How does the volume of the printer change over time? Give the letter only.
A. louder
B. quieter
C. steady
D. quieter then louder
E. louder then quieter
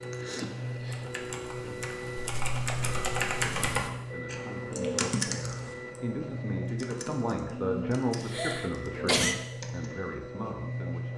C.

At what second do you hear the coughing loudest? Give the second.
9 s.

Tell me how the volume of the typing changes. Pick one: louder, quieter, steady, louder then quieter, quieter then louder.
louder then quieter.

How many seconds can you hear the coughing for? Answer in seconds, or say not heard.
2 s.